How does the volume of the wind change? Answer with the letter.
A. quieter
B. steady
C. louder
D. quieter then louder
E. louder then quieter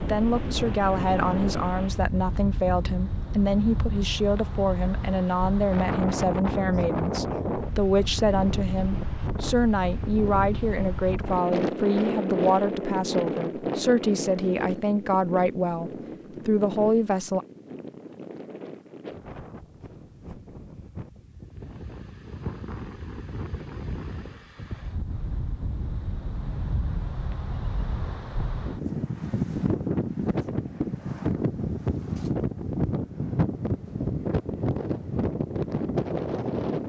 D.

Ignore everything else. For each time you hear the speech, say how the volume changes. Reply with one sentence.
You can hear the speech from 0.0 to 17.4 s, at a steady volume.